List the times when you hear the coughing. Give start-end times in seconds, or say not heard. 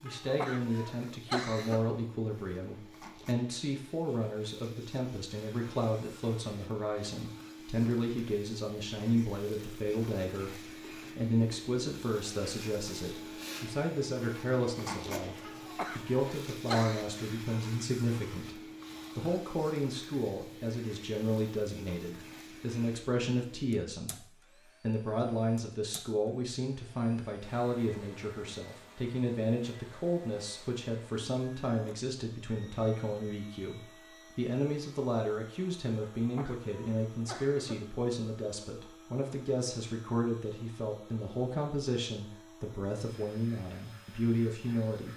0.1-1.9, 15.4-17.1, 36.0-37.9.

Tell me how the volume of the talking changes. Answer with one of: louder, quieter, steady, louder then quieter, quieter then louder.
steady.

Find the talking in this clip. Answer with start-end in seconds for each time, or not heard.
0.0-45.1.